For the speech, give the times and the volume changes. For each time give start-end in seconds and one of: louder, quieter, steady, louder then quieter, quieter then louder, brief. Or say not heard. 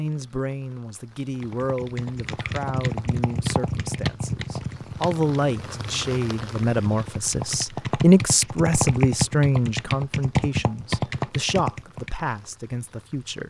0.0-13.4 louder then quieter.